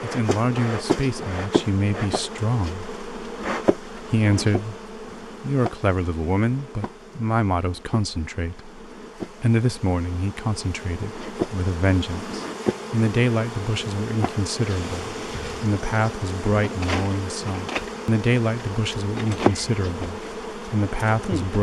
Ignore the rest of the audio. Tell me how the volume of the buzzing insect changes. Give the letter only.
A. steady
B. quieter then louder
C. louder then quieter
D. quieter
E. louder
B.